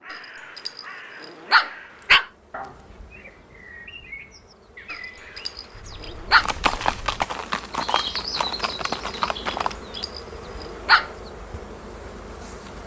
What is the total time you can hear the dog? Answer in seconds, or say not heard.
5 s.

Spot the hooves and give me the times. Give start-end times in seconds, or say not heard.
6.3-9.8.